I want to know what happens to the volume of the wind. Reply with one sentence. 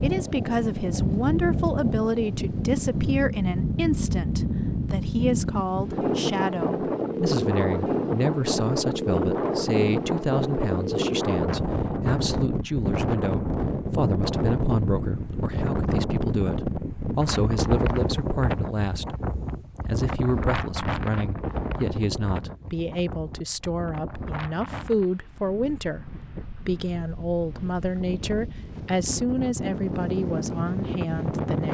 The volume of the wind goes down.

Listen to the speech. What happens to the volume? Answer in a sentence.
The volume of the speech stays about the same.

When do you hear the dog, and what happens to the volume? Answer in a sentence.
The dog can't be heard in this clip.